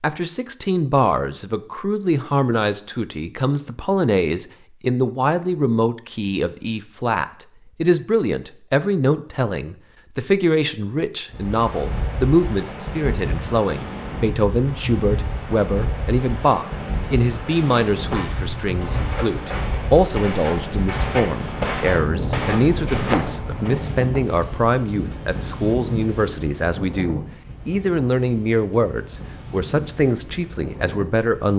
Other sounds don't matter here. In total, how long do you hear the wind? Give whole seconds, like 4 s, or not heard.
20 s.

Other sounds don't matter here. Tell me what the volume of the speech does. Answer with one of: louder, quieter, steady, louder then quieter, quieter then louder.
steady.